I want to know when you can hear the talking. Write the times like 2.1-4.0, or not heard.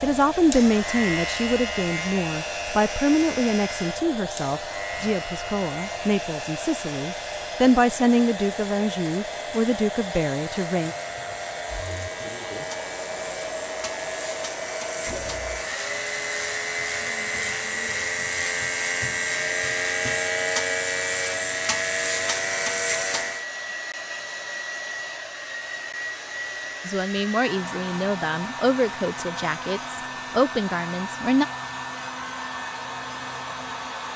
0.0-10.9, 26.9-31.4.